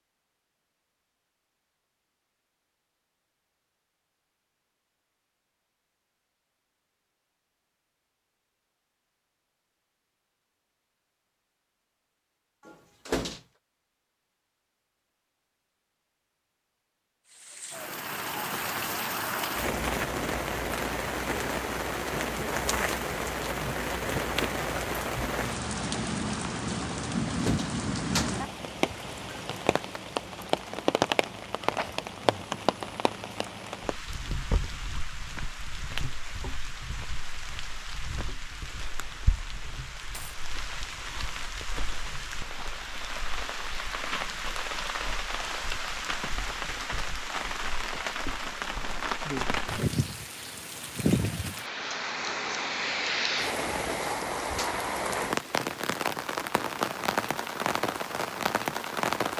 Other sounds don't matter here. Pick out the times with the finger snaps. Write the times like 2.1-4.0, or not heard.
not heard.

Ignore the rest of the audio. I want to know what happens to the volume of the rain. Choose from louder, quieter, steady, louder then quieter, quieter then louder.
quieter then louder.